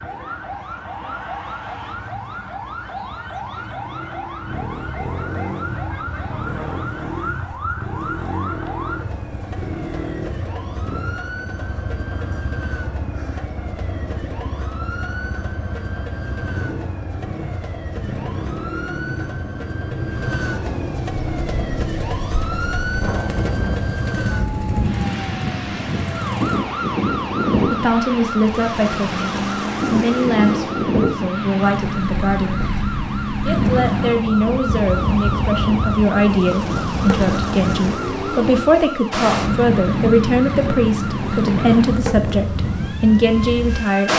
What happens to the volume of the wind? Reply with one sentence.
The volume of the wind stays about the same.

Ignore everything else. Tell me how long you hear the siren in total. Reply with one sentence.
The siren can be heard for 44 seconds in total.